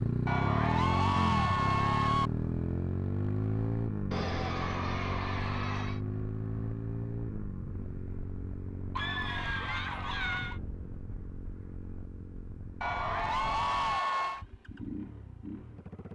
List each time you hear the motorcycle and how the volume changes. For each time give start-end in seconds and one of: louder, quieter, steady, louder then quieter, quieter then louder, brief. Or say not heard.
0.0-16.1 quieter.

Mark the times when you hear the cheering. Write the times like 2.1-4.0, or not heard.
0.2-2.3, 4.1-6.0, 8.9-10.6, 12.8-14.4.